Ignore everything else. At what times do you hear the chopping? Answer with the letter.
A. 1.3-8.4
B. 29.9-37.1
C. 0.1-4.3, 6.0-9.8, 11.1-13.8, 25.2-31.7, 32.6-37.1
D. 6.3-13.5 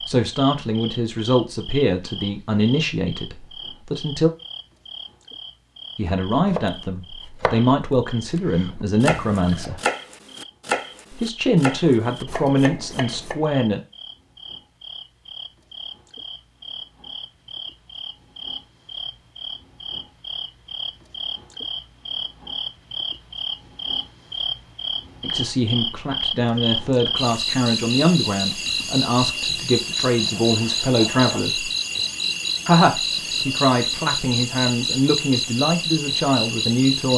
D.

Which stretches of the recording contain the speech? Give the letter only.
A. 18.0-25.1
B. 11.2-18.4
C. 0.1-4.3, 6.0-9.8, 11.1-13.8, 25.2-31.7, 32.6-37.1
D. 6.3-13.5
C.